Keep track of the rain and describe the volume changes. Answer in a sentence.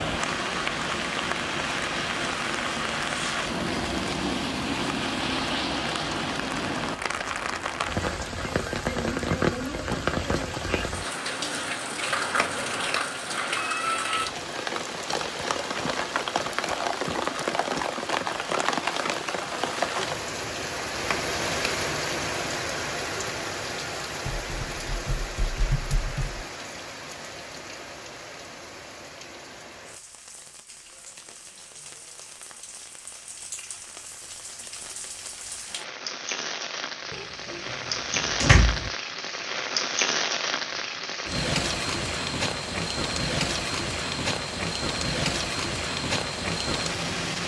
The loudness of the rain goes down, then up.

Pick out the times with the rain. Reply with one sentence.
The rain can be heard from 0.0 to 47.4 s.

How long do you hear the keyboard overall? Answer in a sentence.
The keyboard can be heard for 2 seconds in total.